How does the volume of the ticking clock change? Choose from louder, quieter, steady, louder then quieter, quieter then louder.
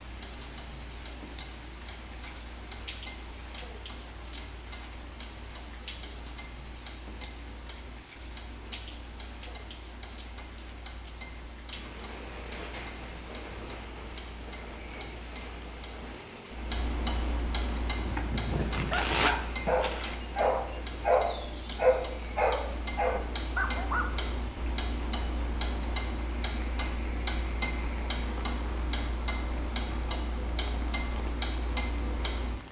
louder.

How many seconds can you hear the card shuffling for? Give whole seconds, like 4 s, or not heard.
2 s.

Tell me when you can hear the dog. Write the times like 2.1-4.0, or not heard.
18.1-24.1.